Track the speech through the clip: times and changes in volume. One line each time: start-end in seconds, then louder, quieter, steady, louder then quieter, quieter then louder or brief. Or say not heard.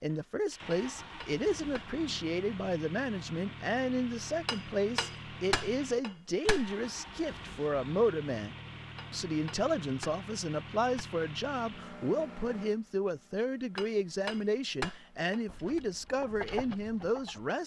0.0-17.6 steady.